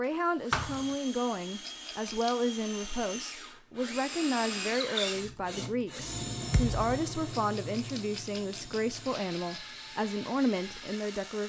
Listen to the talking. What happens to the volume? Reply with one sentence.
The loudness of the talking stays about the same.